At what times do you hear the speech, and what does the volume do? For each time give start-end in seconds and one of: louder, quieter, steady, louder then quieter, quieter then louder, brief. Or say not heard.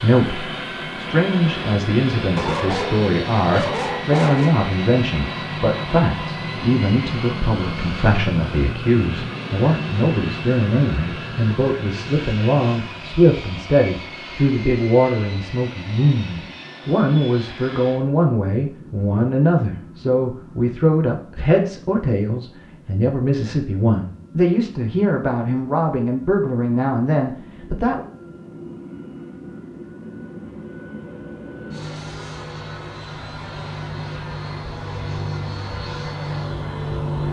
0.0-28.1 steady.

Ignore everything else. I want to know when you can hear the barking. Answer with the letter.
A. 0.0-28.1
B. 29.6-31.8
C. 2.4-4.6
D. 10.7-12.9
C.